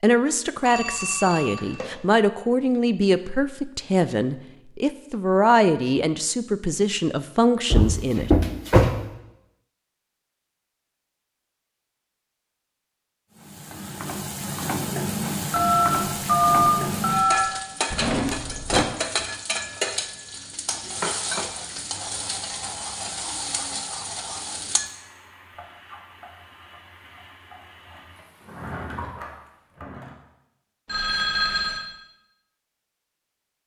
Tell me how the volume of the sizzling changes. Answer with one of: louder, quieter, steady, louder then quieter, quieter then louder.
quieter.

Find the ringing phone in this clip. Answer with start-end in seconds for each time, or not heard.
0.7-1.9, 15.5-17.5, 30.9-31.9.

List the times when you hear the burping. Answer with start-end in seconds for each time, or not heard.
not heard.